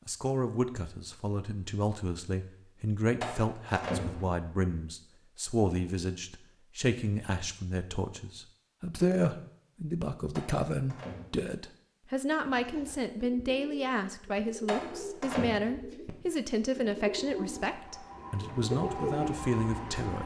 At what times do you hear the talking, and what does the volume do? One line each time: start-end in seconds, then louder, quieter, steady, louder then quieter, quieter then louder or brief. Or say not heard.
0.1-20.2 steady.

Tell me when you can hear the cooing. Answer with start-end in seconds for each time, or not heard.
12.4-20.2.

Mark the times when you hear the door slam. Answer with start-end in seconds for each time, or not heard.
3.2-4.5, 10.3-11.3, 14.7-15.6.